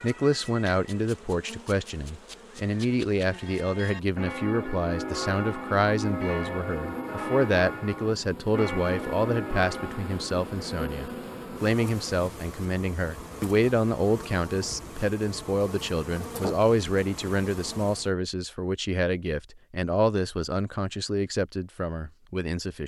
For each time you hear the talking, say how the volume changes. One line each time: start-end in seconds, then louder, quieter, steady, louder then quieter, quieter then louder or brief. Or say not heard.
0.0-22.8 steady.